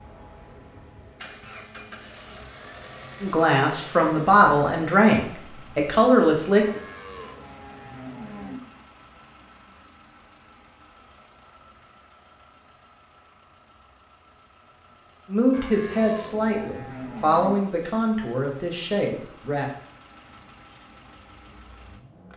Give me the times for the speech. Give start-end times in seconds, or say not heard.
3.2-6.8, 15.2-19.7.